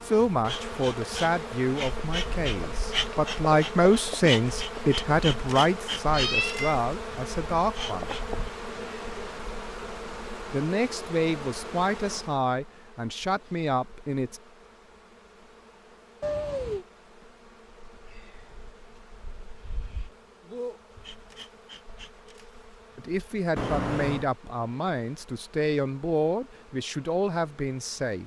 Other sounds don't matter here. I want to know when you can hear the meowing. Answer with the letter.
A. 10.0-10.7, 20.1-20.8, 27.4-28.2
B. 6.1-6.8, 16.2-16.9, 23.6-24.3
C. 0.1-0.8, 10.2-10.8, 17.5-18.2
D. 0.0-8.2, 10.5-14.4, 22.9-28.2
B.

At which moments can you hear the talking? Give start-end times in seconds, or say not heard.
0.0-8.2, 10.5-14.4, 22.9-28.2.